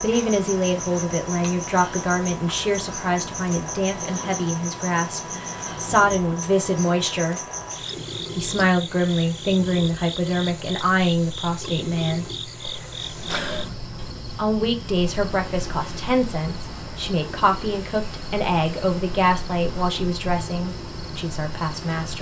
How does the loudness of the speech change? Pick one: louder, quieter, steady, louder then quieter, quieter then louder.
steady.